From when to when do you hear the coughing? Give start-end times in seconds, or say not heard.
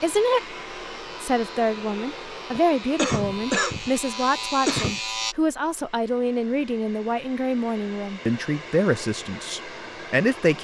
2.5-5.0.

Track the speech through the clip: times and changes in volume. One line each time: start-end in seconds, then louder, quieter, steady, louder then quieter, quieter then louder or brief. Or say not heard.
0.0-0.6 brief
1.2-10.5 steady.